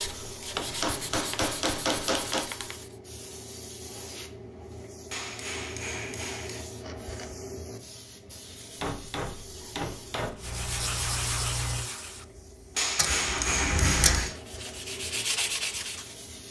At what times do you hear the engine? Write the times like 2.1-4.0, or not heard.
10.3-14.2.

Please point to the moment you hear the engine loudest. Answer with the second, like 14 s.
14 s.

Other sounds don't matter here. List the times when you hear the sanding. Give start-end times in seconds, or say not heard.
0.0-3.0, 10.3-12.2, 14.2-16.4.